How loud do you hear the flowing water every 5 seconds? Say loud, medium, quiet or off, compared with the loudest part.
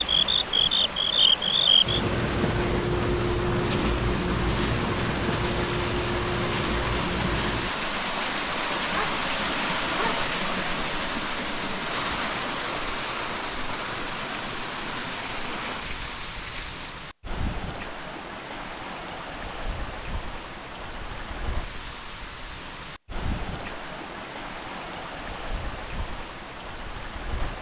medium, loud, loud, medium, medium, medium.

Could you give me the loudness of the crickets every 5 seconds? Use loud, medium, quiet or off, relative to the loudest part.
loud, medium, medium, loud, off, off.